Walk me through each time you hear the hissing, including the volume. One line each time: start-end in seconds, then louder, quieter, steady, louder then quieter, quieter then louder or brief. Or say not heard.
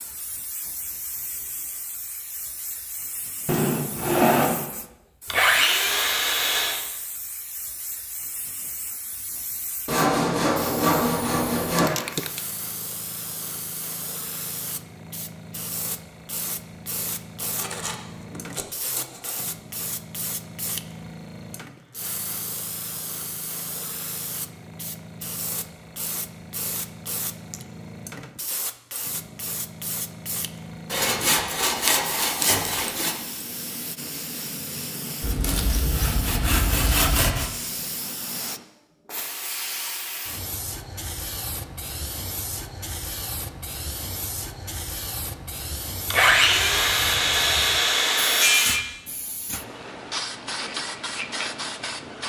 0.0-52.2 louder.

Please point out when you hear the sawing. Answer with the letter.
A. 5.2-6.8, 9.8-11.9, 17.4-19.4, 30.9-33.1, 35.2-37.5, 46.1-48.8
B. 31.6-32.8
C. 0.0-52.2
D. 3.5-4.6
A.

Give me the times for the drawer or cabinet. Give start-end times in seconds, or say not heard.
3.5-4.6.